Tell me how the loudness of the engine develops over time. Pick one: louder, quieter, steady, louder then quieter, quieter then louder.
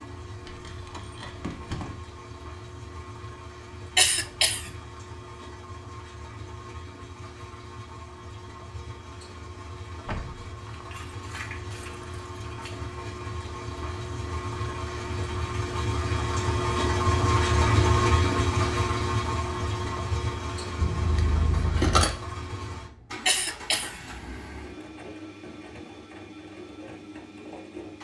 louder then quieter.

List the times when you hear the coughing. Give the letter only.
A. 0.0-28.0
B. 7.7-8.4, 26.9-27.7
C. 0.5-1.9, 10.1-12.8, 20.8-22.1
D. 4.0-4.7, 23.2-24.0
D.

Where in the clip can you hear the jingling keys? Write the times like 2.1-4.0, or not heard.
0.5-1.9, 10.1-12.8, 20.8-22.1.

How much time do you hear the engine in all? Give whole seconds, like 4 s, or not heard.
28 s.